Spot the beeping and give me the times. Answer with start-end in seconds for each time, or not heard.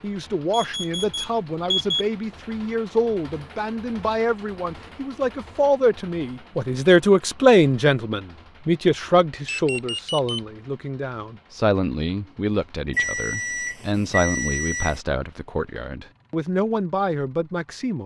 0.5-2.0, 9.4-10.4, 12.9-15.0.